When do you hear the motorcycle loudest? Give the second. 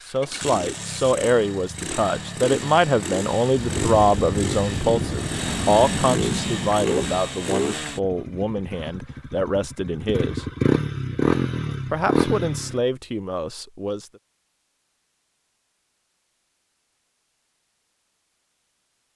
11 s.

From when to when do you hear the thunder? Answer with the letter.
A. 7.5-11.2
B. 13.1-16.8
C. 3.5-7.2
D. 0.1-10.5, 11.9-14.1
C.